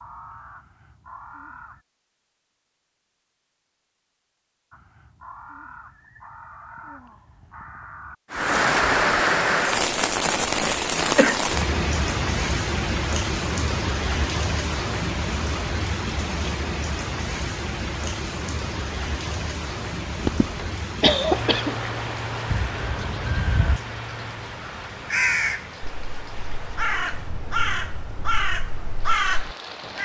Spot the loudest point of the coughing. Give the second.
21 s.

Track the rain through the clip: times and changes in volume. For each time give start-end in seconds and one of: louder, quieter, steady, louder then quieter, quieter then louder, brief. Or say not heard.
8.3-29.9 quieter.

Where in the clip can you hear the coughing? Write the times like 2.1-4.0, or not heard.
10.2-11.4, 20.2-21.8.